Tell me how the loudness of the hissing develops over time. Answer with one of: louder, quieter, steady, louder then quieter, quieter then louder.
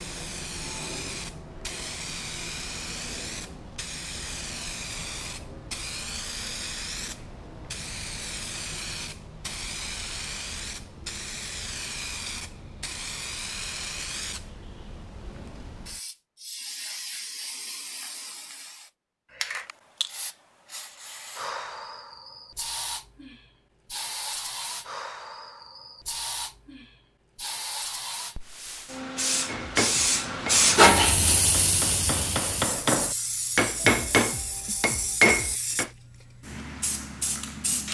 louder.